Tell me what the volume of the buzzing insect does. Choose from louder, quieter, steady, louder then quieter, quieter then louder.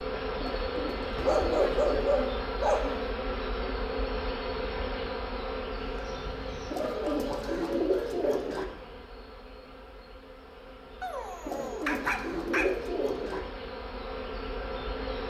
quieter then louder.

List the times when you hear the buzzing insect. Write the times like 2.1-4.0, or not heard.
0.0-15.2.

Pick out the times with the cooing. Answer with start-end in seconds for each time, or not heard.
0.3-2.1, 6.7-8.7, 11.4-13.4.